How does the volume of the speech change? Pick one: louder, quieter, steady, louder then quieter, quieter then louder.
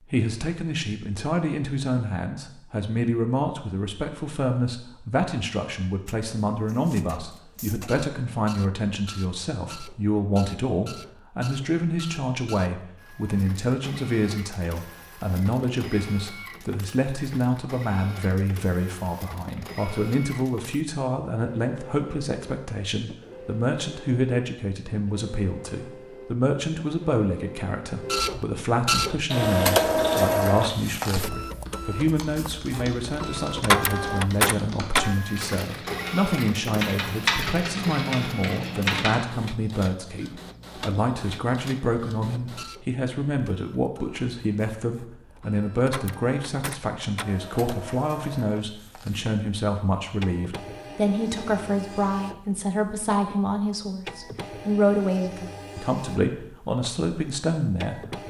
steady.